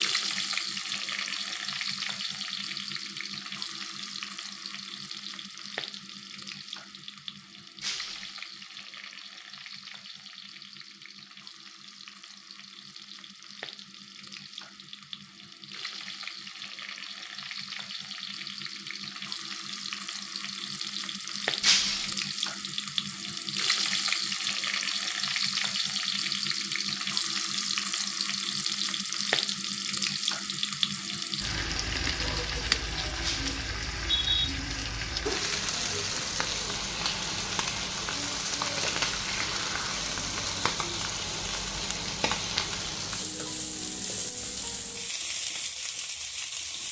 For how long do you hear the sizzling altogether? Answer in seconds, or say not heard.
47 s.